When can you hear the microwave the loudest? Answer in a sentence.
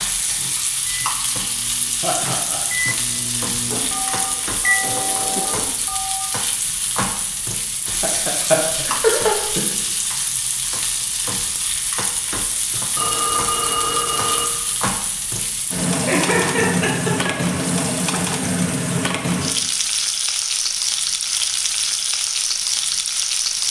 The loudest moment of the microwave is at 5 seconds.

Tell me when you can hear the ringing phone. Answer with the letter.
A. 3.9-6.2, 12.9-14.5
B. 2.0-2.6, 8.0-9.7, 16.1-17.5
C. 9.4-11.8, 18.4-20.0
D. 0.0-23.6
A.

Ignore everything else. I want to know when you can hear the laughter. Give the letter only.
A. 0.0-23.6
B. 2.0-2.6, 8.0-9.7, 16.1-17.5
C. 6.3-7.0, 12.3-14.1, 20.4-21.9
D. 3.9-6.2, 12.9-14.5
B.